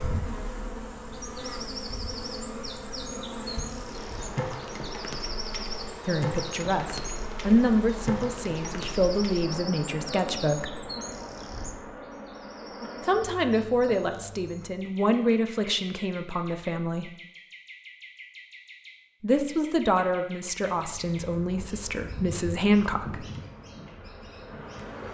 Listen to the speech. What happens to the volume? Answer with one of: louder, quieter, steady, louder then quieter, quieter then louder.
steady.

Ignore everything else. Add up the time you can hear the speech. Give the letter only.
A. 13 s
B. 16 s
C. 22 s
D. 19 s
A.